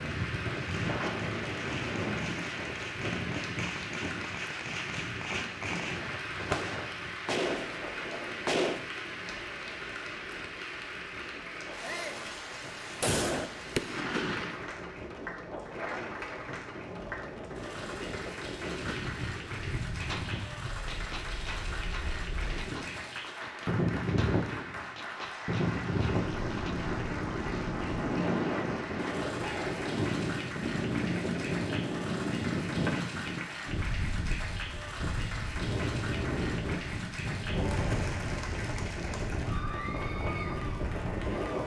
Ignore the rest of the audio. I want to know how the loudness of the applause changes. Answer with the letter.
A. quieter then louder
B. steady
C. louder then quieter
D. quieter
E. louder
B.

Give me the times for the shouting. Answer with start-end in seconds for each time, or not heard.
11.8-12.2.